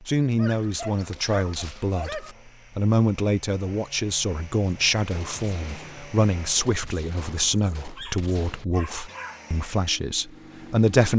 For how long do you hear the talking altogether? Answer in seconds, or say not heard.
11 s.